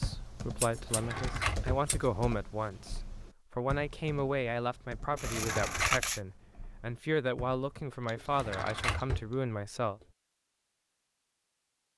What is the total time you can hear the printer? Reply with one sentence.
You can't hear the printer here.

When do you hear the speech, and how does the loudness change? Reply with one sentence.
The speech can be heard from 0.0 to 10.0 s, at a steady volume.